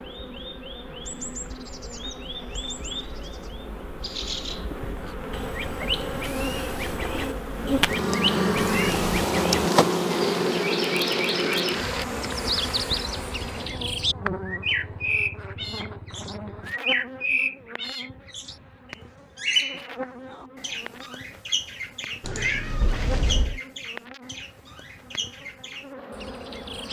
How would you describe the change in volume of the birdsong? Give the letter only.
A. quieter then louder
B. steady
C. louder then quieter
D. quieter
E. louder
C.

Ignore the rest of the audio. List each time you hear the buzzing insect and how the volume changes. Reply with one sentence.
The buzzing insect can be heard from 0.0 to 26.8 s, getting louder then quieter.